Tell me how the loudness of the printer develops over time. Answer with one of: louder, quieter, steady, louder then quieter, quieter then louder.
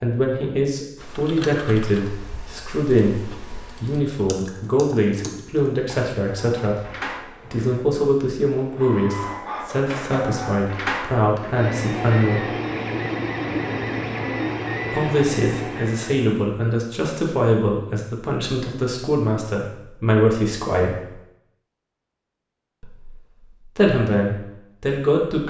louder.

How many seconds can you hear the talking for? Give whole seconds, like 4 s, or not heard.
21 s.